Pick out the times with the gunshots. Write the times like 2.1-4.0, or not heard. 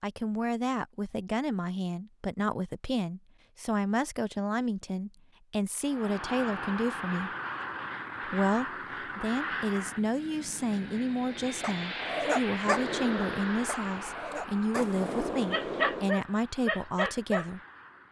12.7-16.2.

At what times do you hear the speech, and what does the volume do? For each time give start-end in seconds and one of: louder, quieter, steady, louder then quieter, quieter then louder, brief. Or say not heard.
0.0-7.3 steady
8.2-17.6 steady.